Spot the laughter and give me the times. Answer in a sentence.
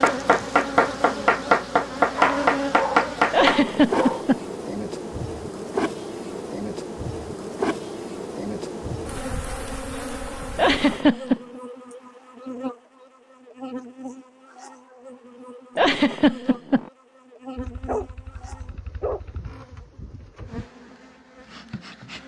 You can hear the laughter from 3.3 to 4.5 s, from 10.6 to 11.4 s and from 15.8 to 16.9 s.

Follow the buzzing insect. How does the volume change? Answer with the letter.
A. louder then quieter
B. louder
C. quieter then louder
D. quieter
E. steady
D.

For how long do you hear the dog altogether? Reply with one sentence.
The dog can be heard for 4 seconds in total.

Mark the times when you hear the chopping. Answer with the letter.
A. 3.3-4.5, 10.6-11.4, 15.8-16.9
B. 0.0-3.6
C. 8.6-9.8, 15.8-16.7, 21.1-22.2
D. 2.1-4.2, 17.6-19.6
B.